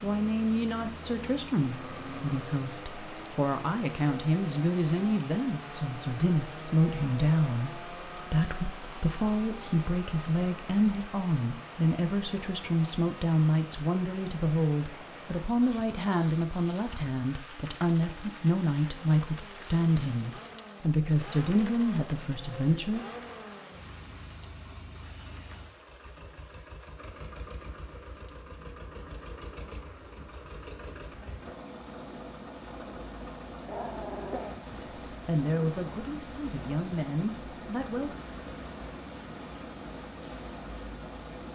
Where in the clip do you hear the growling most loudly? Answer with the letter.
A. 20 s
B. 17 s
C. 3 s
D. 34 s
D.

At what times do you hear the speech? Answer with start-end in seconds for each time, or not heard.
0.0-23.1, 34.7-38.1.